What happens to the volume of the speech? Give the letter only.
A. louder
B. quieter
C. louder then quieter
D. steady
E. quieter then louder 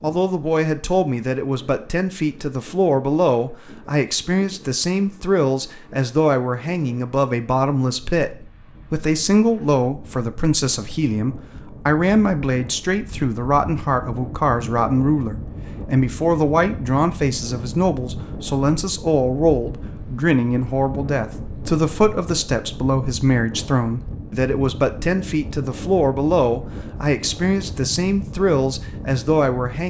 D.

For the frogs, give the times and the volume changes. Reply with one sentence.
The frogs can't be heard in this clip.